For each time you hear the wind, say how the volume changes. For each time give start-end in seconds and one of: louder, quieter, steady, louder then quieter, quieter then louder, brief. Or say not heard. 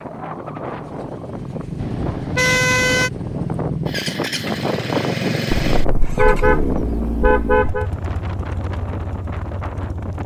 0.0-10.2 louder then quieter.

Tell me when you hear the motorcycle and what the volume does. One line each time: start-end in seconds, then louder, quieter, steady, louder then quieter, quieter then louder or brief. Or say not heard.
0.0-10.2 louder then quieter.